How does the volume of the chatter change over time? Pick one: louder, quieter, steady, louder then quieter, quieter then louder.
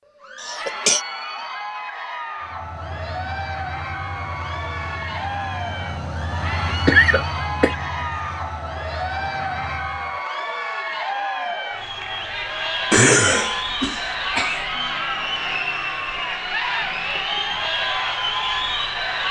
louder.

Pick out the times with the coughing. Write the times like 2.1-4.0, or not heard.
0.4-1.0, 6.8-7.8, 12.9-14.7.